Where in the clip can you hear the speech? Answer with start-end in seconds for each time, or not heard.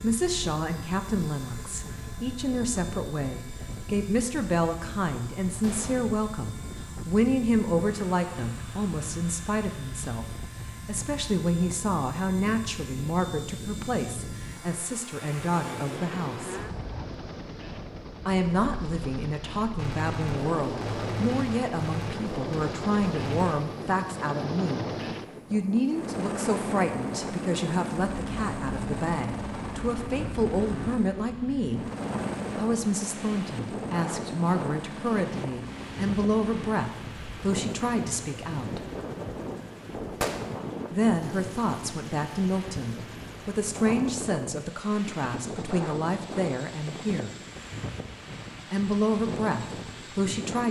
0.0-16.6, 18.2-24.9, 25.5-31.8, 32.5-38.8, 40.9-47.4, 48.7-50.6.